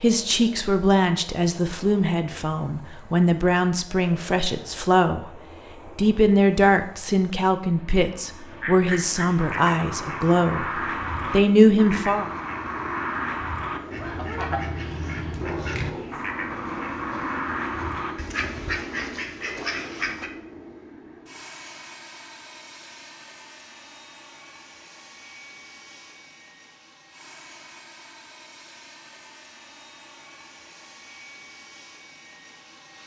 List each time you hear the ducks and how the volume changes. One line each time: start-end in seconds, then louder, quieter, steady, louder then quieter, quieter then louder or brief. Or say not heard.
8.5-20.3 steady.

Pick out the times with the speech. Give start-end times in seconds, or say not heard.
0.0-5.3, 6.0-12.2.